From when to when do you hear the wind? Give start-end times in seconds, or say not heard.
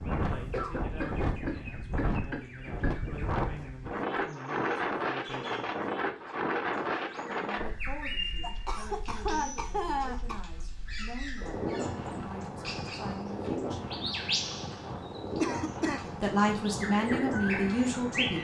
0.0-18.3.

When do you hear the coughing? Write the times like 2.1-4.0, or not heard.
0.5-3.2, 8.4-10.4, 15.4-16.1.